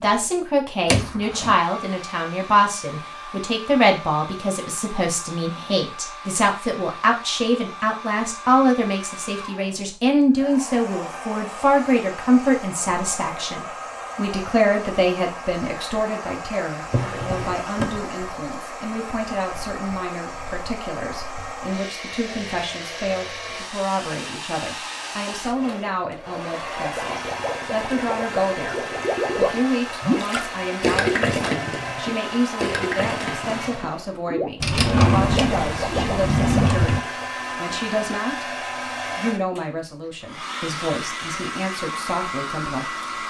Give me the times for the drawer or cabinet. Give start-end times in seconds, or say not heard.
0.8-1.6, 16.8-18.1, 34.6-37.0.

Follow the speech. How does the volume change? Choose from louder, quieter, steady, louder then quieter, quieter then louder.
quieter.